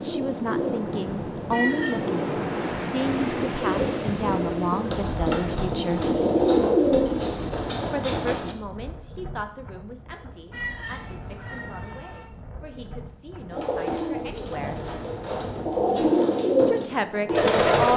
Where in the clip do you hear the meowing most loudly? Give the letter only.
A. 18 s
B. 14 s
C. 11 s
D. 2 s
D.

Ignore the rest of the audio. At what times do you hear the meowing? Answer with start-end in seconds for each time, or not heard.
1.5-2.1, 10.5-12.3.